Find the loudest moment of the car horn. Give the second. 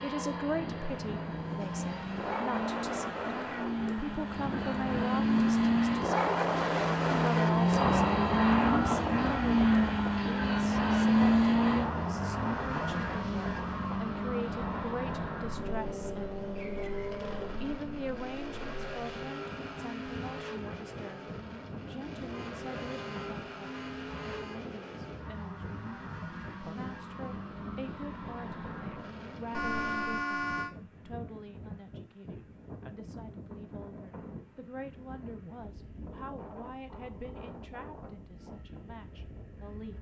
30 s.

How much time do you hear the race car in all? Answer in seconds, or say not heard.
30 s.